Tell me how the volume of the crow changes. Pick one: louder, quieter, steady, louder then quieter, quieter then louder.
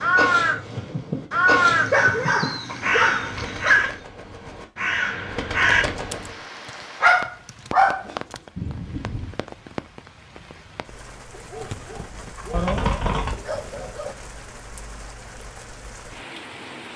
quieter then louder.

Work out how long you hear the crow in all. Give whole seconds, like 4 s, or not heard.
6 s.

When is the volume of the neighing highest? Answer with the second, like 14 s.
13 s.